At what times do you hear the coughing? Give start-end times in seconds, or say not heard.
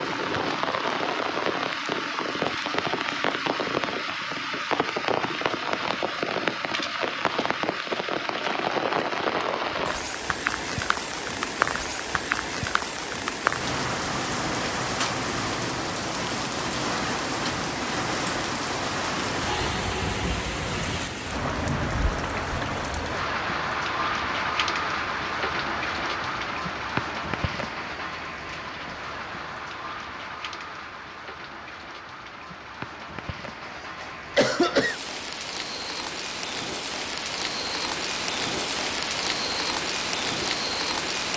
33.6-35.0.